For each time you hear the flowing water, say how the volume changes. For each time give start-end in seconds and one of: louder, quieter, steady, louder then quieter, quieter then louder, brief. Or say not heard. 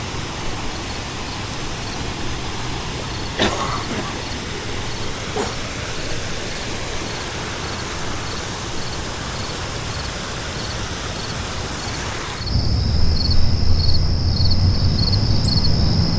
0.0-16.1 quieter.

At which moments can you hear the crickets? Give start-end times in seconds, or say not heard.
0.0-16.1.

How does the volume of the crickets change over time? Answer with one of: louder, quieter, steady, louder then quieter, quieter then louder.
louder.